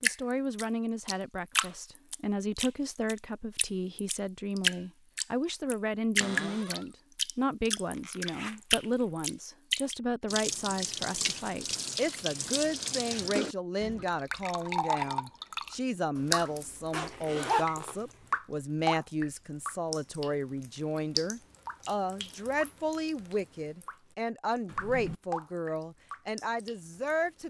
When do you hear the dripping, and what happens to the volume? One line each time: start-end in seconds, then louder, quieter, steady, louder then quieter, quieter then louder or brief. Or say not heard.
0.0-23.9 quieter
24.8-27.4 brief.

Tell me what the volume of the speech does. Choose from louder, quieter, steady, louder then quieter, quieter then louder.
steady.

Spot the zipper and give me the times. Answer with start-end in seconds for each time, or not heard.
7.9-9.1, 16.9-17.9.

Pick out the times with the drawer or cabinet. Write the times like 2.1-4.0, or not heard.
6.2-6.8, 24.6-25.2.